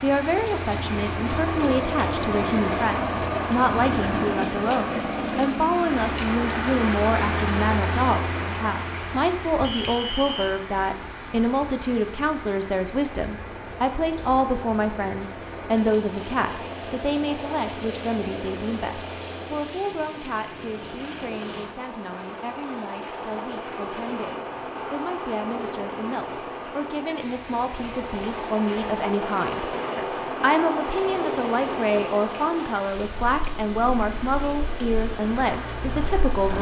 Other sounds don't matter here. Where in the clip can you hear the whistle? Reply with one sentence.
You can hear the whistle from 9.6 to 10.5 s.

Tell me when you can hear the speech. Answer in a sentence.
You can hear the speech from 0.0 to 36.5 s.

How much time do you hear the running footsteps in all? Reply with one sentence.
The running footsteps can't be heard in this clip.